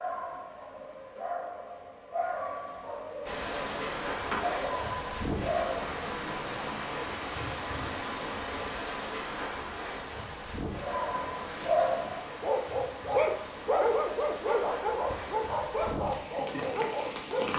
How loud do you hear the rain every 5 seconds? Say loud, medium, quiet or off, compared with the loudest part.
loud, loud, medium, loud.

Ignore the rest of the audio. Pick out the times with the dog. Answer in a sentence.
The dog can be heard from 0.0 to 5.8 s and from 10.8 to 17.5 s.